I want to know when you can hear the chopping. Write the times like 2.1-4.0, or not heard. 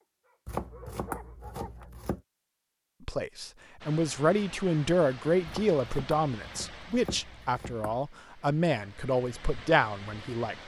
0.5-2.2, 5.5-7.9.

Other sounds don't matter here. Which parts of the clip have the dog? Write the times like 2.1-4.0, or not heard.
0.0-1.9.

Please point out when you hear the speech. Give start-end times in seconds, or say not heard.
3.0-10.6.